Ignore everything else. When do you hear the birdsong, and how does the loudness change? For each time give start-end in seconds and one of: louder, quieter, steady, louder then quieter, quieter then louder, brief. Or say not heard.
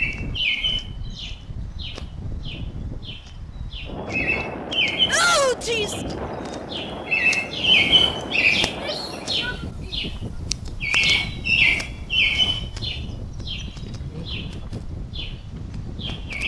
0.0-16.4 louder then quieter.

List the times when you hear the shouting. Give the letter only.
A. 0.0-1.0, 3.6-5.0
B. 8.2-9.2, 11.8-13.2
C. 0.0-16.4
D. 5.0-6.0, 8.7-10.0
D.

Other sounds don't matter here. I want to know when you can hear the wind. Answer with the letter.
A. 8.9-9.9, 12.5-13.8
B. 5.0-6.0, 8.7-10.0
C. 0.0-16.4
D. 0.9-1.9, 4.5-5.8
C.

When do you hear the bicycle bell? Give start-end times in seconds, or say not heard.
not heard.